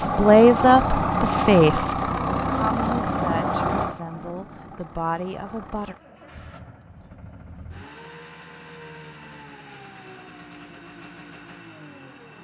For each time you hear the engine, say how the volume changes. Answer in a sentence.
You can hear the engine from 0.0 to 12.3 s, getting quieter.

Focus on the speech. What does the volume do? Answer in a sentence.
The volume of the speech goes down, then up.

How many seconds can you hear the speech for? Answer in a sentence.
The speech can be heard for 6 seconds in total.